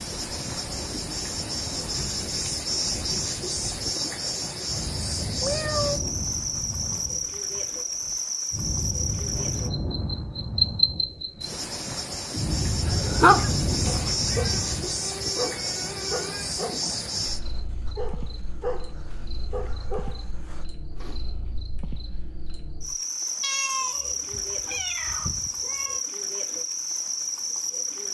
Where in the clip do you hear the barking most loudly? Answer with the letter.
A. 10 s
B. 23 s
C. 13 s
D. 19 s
C.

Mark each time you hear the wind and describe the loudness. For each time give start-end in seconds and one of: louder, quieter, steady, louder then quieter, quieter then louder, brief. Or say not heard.
0.0-14.9 louder.